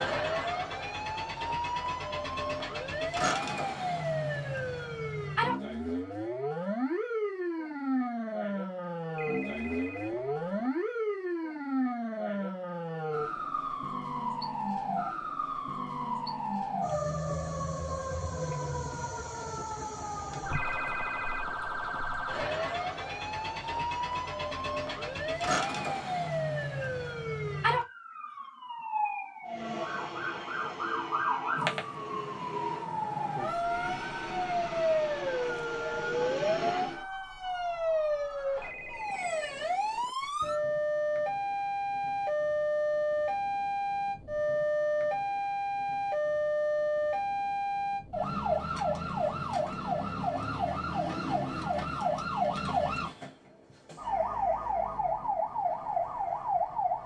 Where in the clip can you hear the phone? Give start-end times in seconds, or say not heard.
9.2-10.7, 20.5-22.1, 38.5-40.1.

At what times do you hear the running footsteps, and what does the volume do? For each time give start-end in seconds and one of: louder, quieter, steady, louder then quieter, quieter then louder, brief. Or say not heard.
not heard.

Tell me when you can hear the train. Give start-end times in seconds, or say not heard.
29.4-37.0.